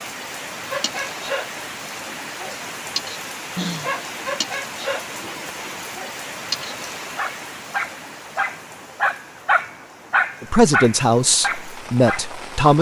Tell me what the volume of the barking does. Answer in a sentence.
The volume of the barking goes up.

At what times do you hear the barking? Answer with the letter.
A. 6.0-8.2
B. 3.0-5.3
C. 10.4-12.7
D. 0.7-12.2
D.